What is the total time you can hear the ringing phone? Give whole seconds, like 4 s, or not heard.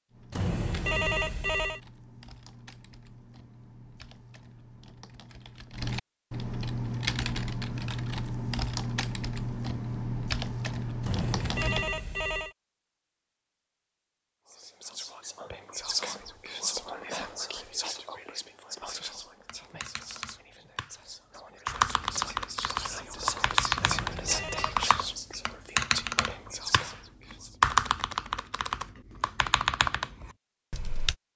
4 s.